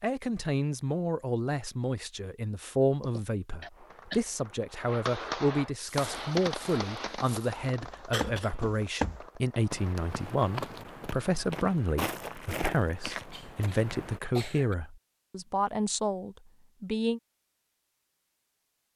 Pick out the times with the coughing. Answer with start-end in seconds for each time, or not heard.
3.0-4.2, 8.1-8.6, 12.8-14.8.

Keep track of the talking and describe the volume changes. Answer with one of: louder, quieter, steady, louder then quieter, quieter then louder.
steady.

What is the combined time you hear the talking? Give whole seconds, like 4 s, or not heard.
17 s.